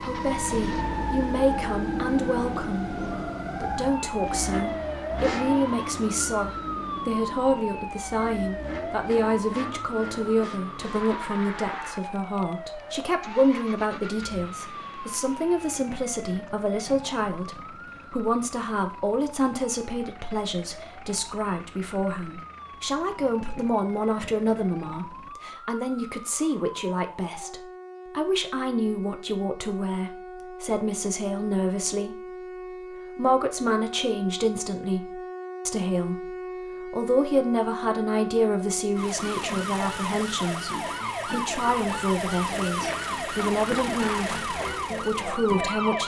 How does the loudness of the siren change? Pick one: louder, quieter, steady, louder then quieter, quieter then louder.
quieter then louder.